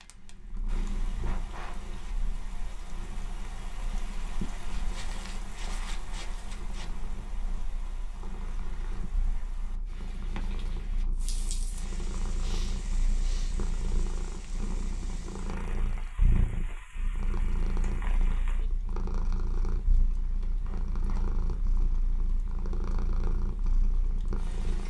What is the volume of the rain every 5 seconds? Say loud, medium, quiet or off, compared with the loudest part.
loud, loud, loud, loud, medium.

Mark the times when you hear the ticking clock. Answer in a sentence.
The ticking clock can't be heard in this clip.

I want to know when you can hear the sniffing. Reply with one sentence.
The sniffing can be heard from 0.6 to 1.9 s, from 12.4 to 13.6 s and from 20.6 to 21.2 s.